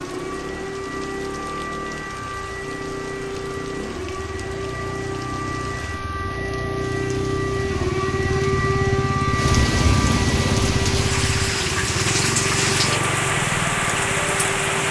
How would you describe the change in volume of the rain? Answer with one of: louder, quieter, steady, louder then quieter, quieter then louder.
louder.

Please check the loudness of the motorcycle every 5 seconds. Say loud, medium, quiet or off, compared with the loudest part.
medium, loud, loud.